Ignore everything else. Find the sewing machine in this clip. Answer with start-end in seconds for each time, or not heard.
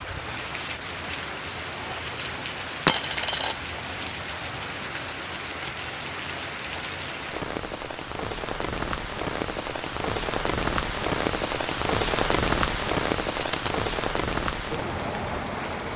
not heard.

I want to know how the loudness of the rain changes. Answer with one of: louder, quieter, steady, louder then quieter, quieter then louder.
louder.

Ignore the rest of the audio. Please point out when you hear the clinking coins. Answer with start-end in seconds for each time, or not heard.
2.9-3.5, 5.6-6.0, 13.3-13.9.